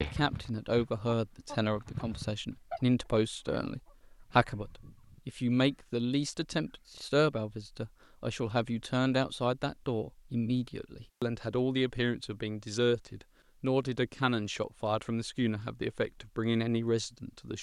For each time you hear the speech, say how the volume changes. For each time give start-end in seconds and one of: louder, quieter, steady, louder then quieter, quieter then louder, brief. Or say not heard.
0.0-17.5 steady.